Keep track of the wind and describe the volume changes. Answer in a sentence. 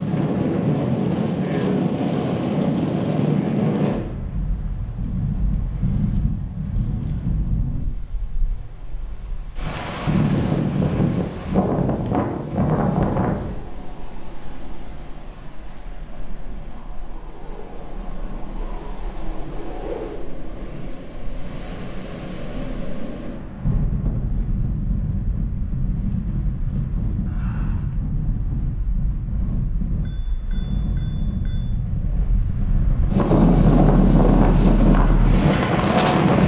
The loudness of the wind goes down, then up.